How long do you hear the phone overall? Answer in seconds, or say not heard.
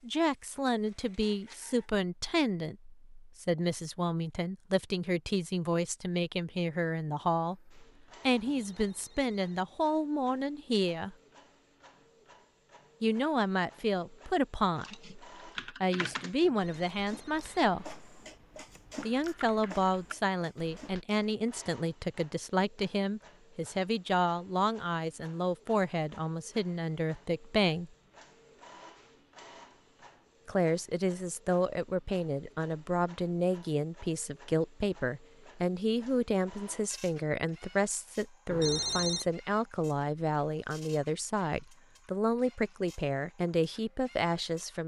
3 s.